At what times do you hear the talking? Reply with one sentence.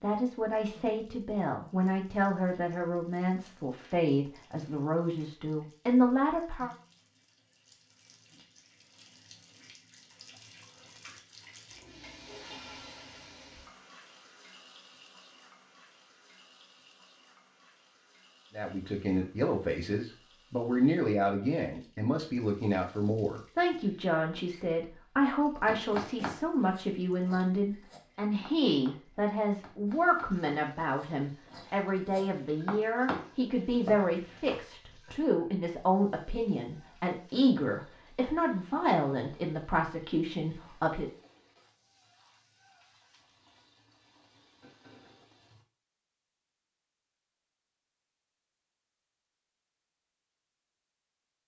The talking can be heard from 0.0 to 6.7 s and from 18.5 to 41.1 s.